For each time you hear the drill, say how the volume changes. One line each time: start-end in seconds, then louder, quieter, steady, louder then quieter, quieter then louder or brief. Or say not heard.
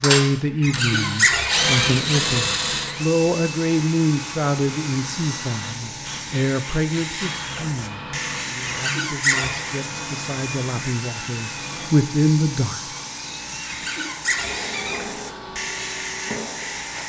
0.0-17.0 quieter.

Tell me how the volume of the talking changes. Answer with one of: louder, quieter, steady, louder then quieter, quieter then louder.
quieter then louder.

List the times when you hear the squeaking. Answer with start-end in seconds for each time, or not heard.
0.6-1.9, 8.7-9.6, 13.7-15.1.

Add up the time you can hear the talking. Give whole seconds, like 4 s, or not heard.
13 s.